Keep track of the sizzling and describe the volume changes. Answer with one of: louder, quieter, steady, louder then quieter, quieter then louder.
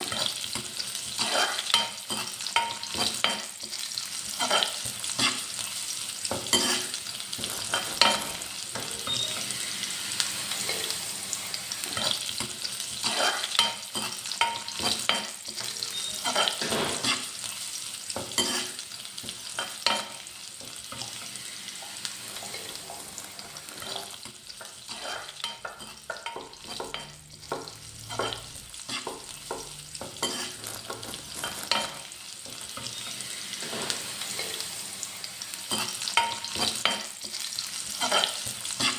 quieter then louder.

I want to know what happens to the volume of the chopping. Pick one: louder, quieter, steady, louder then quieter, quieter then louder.
louder.